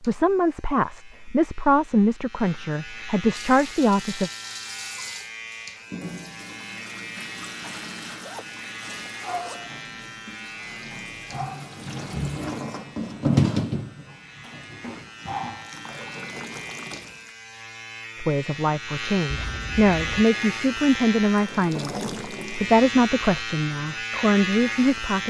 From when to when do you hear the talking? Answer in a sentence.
You can hear the talking from 0.0 to 4.3 s and from 18.1 to 25.2 s.